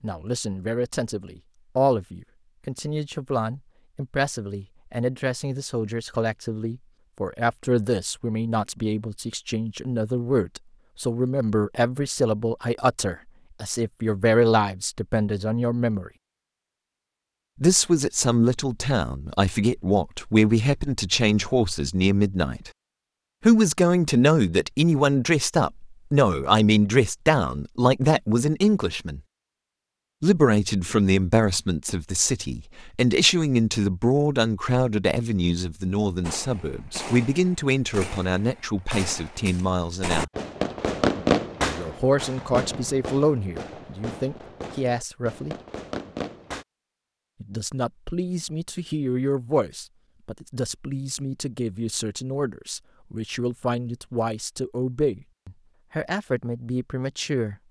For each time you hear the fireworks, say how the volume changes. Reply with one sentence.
You can hear the fireworks from 36.2 to 46.6 s, getting louder then quieter.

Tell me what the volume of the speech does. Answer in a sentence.
The loudness of the speech goes up, then down.